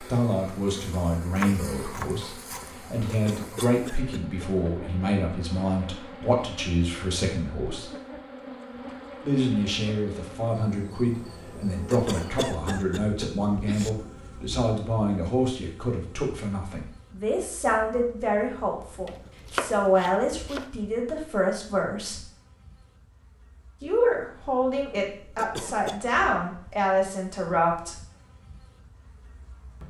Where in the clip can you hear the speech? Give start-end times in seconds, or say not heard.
0.0-7.9, 9.2-22.3, 23.8-27.9.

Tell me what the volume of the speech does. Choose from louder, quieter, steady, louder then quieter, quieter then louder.
steady.